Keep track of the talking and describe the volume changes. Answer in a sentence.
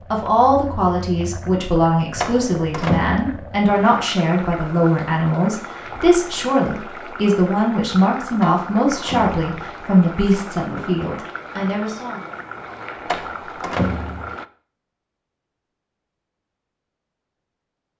The volume of the talking stays about the same.